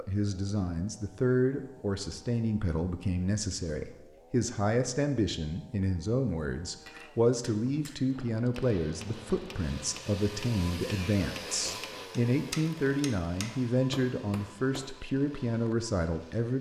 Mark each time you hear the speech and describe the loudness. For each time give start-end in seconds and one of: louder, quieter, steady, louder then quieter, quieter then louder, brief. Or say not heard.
0.0-16.5 steady.